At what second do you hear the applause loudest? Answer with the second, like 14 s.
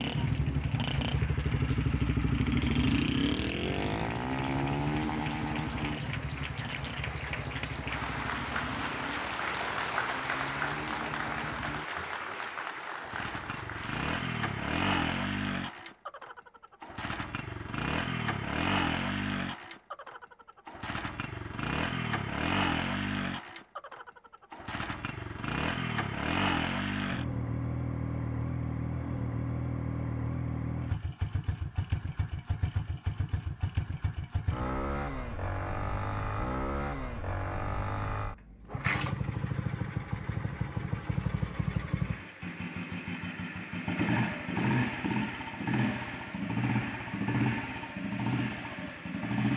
10 s.